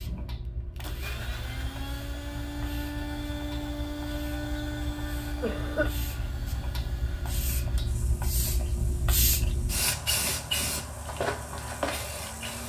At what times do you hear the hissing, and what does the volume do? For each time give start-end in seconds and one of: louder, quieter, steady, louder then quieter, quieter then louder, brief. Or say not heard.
0.0-12.6 louder.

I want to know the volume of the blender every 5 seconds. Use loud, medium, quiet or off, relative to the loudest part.
loud, medium, medium.